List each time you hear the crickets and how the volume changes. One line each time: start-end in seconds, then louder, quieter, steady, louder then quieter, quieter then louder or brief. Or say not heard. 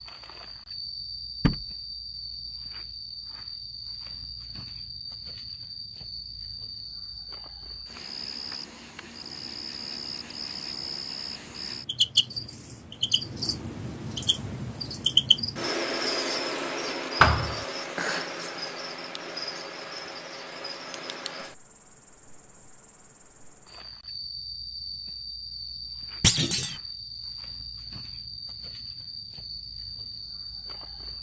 0.0-31.1 louder then quieter.